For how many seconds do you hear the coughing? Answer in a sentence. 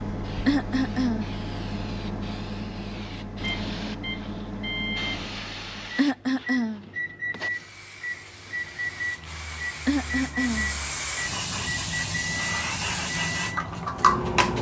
You can hear the coughing for 3 seconds altogether.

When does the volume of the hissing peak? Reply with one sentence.
The volume of the hissing peaks at 14 seconds.